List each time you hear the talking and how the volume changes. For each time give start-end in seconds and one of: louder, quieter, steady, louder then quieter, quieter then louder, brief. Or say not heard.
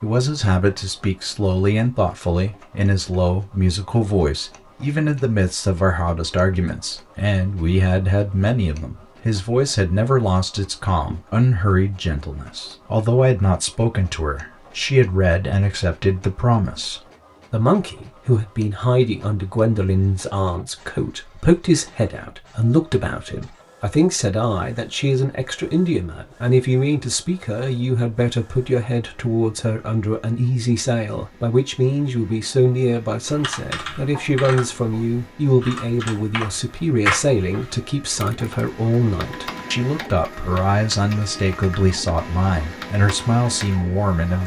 0.0-44.4 steady.